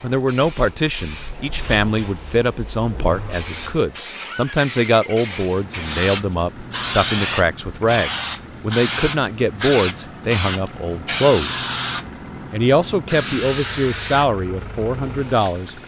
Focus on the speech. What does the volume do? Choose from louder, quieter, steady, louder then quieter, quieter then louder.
steady.